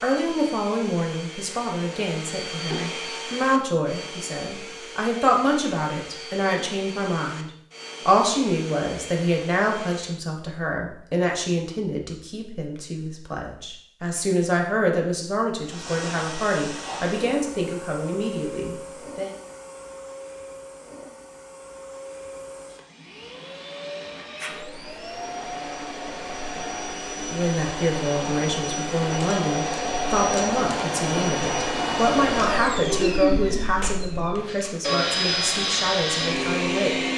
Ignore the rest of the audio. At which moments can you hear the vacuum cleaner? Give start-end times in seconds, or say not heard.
0.0-10.2, 15.7-37.1.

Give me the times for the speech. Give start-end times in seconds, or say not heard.
0.0-19.3, 27.2-37.0.